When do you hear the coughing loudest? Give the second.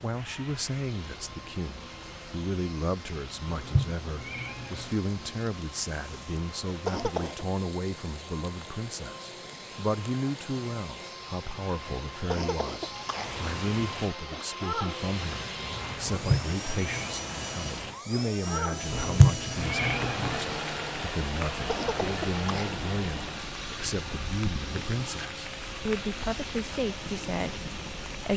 7 s.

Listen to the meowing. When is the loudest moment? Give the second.
19 s.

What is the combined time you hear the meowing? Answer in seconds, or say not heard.
4 s.